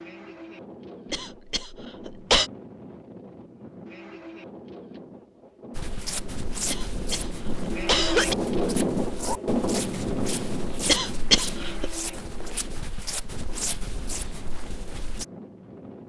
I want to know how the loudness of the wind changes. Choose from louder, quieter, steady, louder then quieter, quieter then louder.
louder then quieter.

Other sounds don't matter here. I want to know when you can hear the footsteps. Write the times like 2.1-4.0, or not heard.
5.8-15.2.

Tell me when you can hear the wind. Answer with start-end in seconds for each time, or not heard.
0.0-16.0.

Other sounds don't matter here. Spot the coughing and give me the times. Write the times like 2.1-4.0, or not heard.
1.1-2.5, 6.7-8.3, 10.8-12.0.